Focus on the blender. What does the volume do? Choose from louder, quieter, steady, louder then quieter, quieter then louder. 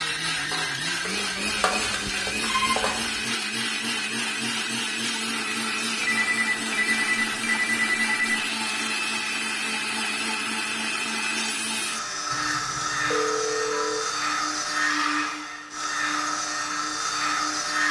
steady.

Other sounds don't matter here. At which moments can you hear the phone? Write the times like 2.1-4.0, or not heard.
1.4-2.8, 6.0-8.4, 12.3-14.1.